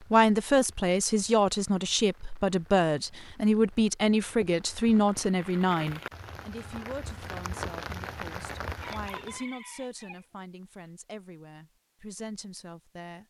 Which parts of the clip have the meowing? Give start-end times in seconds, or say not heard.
not heard.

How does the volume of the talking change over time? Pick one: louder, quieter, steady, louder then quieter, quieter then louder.
quieter.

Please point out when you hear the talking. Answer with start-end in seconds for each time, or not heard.
0.1-13.2.